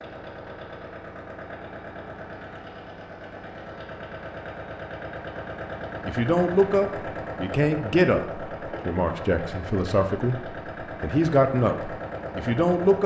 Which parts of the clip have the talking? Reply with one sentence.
You can hear the talking from 6.0 to 13.0 s.